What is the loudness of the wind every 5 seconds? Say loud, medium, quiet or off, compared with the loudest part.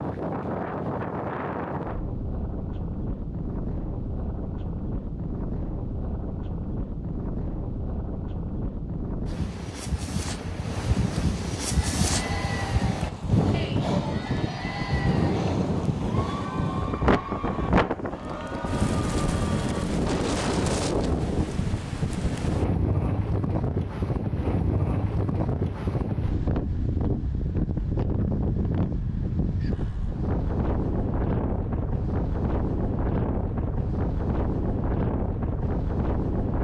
medium, medium, loud, loud, loud, loud, loud, loud.